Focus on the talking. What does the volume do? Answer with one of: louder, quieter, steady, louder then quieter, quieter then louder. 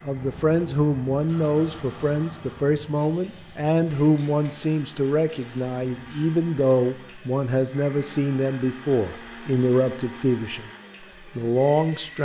steady.